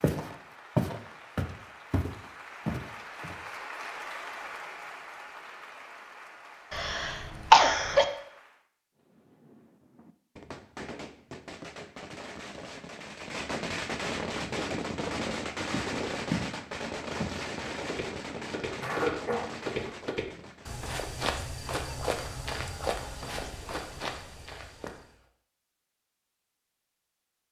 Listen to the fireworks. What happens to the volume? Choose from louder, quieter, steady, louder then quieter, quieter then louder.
louder then quieter.